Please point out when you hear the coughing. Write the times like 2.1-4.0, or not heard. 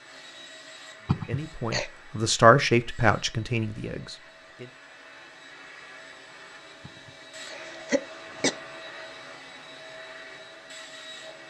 1.1-1.9, 6.8-8.6.